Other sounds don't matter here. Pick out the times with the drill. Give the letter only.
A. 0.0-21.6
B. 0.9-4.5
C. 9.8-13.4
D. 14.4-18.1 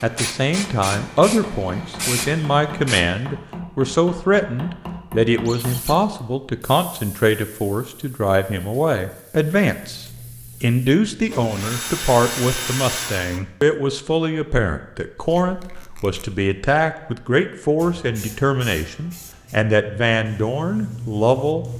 C.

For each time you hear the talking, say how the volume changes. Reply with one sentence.
The talking can be heard from 0.0 to 21.6 s, at a steady volume.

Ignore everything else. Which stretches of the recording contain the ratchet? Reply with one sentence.
The ratchet can't be heard in this clip.